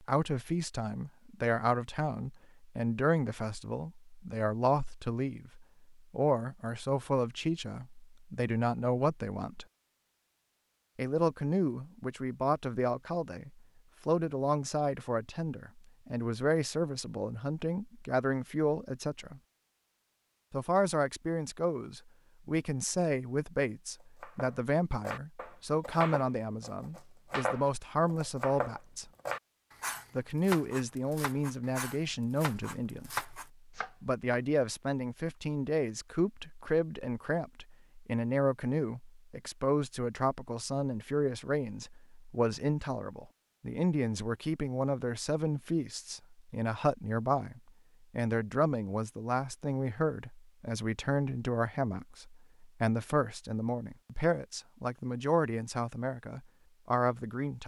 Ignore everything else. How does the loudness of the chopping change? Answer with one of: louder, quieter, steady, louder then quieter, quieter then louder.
steady.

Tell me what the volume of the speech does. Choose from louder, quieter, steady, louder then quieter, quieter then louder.
steady.